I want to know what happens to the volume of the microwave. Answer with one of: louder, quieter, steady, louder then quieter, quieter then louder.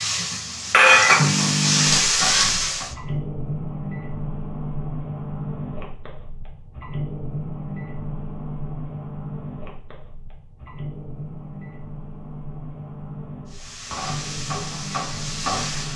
quieter.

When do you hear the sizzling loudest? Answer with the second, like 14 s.
1 s.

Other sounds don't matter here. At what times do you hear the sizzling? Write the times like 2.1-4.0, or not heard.
0.0-2.9, 13.6-15.9.